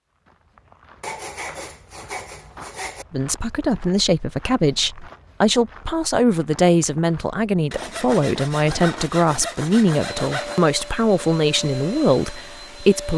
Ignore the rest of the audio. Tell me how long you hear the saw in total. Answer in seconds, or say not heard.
5 s.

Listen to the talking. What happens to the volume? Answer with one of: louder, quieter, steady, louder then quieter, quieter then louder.
steady.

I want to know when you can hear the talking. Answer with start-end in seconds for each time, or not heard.
3.1-13.1.